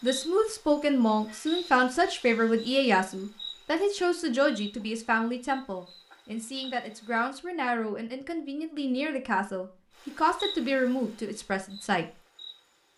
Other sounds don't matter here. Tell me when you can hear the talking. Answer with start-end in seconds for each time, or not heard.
0.0-12.1.